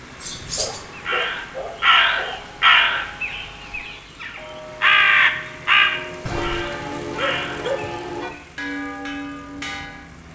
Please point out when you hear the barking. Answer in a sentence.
You can hear the barking from 0.4 to 2.4 s and from 6.2 to 7.8 s.